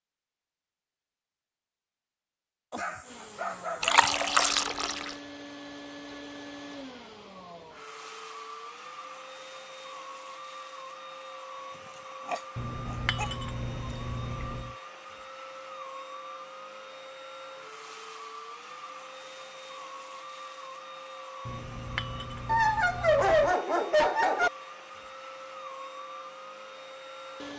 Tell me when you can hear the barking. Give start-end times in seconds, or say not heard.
2.7-4.7, 12.2-13.3, 22.4-24.5.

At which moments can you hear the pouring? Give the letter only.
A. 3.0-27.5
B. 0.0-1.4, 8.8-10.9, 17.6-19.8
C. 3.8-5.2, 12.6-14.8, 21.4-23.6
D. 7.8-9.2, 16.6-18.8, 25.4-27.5
C.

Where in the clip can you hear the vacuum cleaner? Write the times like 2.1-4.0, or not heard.
3.0-27.5.